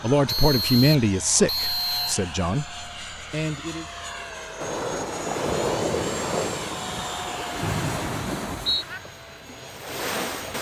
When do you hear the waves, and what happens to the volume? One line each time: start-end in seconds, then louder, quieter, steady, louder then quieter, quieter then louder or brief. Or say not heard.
4.5-10.5 quieter.